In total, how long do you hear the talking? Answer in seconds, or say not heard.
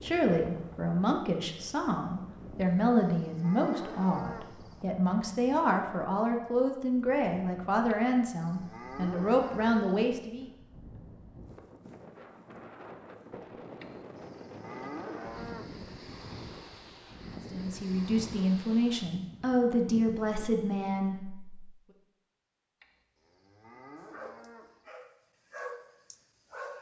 15 s.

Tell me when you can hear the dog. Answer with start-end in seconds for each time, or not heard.
24.1-26.7.